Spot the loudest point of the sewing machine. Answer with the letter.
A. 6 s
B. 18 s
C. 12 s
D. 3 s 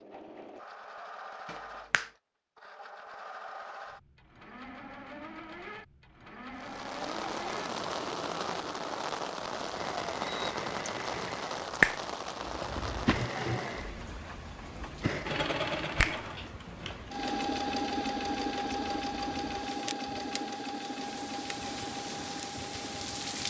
B.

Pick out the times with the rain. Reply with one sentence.
You can hear the rain from 6.5 to 23.4 s.